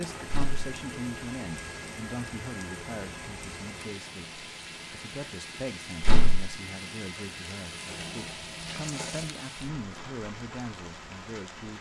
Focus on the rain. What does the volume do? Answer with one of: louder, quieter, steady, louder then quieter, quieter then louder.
steady.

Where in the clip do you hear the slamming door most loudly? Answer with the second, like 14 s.
6 s.